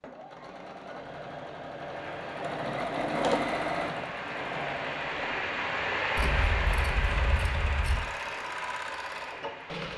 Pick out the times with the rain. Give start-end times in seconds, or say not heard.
1.9-9.9.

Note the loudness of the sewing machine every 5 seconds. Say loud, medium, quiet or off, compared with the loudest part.
loud, medium.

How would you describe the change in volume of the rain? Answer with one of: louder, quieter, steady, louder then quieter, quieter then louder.
louder then quieter.